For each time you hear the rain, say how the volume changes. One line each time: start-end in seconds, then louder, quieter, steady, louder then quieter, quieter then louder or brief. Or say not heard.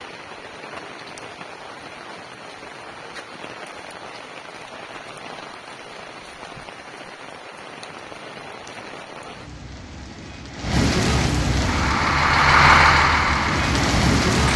0.0-14.5 louder.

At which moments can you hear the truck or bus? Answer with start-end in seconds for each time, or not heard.
11.6-14.5.